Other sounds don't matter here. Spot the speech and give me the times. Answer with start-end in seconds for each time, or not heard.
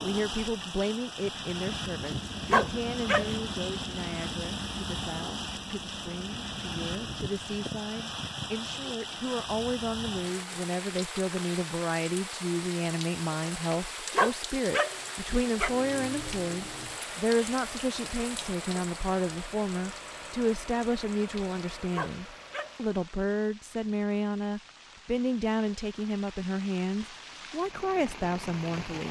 0.0-29.0.